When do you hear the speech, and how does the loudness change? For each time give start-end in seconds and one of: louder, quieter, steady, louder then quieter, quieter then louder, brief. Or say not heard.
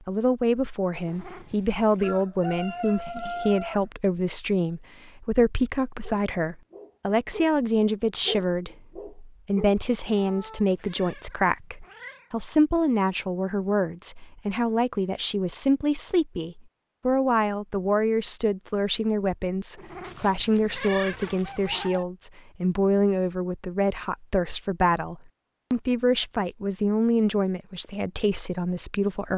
0.1-29.3 steady.